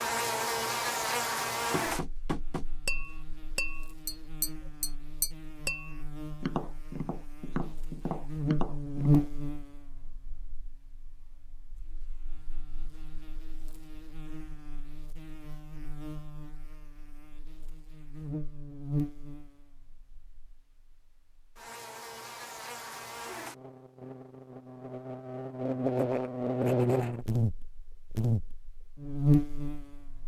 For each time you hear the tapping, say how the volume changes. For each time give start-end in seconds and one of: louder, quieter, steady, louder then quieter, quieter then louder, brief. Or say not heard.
1.7-9.3 steady.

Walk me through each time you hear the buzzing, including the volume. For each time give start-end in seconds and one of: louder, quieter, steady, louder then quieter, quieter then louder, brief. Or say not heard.
0.0-30.2 quieter then louder.